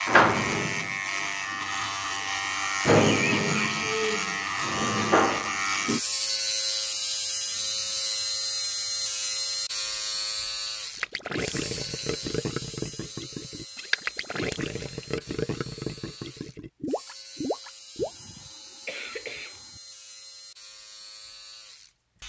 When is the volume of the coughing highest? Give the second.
3 s.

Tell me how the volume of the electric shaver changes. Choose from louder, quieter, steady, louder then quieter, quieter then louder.
quieter.